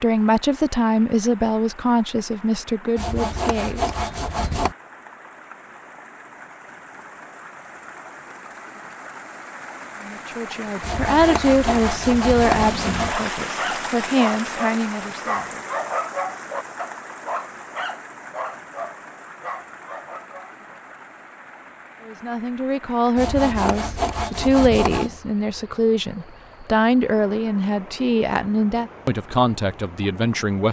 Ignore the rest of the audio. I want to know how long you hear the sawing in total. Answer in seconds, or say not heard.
6 s.